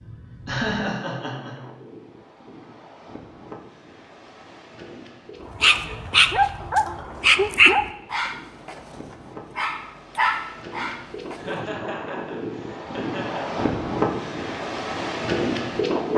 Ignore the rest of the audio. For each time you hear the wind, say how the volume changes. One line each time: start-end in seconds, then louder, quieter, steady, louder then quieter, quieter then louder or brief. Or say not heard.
0.0-16.1 louder.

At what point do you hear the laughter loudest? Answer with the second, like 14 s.
1 s.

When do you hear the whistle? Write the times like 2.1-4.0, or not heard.
not heard.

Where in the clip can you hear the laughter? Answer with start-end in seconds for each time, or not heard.
0.5-1.6, 5.8-7.0, 11.3-13.6.